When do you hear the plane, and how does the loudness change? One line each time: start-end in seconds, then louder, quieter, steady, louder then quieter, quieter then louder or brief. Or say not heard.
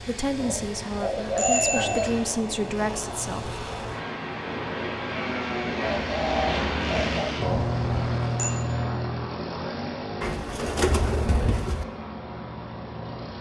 0.0-13.3 louder then quieter.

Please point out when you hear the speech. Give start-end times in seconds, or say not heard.
0.0-3.5.